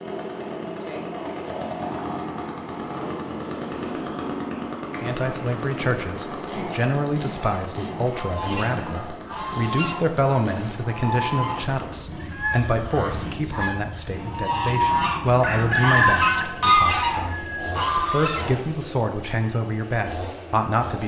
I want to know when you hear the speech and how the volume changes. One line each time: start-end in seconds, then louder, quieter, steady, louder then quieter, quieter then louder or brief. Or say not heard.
5.0-21.0 steady.